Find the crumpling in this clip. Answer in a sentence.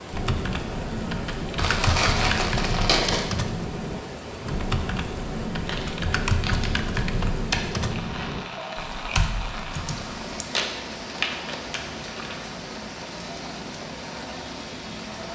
The crumpling can be heard from 1.6 to 3.3 s, from 5.6 to 7.8 s and from 10.6 to 12.3 s.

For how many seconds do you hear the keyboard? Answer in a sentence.
You can hear the keyboard for 10 seconds altogether.